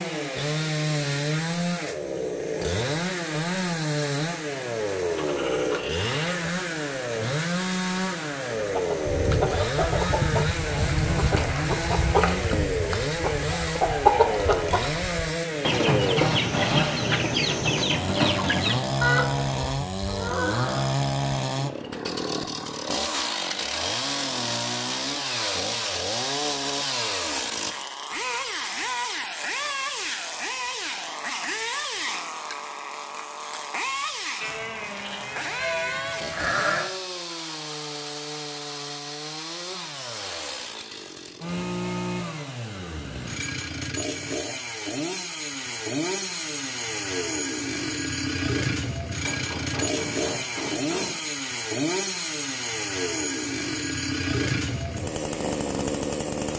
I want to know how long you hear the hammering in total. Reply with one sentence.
You can hear the hammering for 2 seconds altogether.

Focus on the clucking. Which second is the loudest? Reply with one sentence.
The loudest moment of the clucking is at 14 seconds.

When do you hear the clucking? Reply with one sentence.
You can hear the clucking from 8.5 to 20.9 s.